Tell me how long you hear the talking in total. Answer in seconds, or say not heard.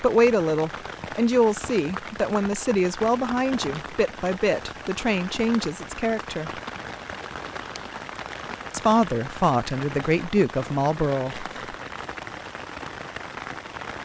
9 s.